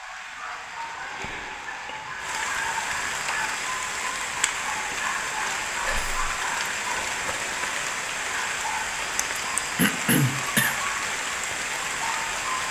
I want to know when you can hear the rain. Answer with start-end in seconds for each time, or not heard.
0.0-12.6.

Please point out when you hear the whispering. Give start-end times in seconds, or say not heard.
5.8-6.2.